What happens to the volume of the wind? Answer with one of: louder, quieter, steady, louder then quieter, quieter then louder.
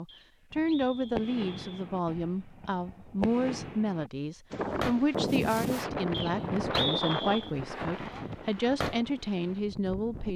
quieter.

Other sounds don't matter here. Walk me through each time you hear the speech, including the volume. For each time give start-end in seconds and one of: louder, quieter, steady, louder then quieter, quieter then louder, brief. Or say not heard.
0.0-10.3 steady.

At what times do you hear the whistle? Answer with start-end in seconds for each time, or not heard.
0.1-1.9, 6.1-7.5.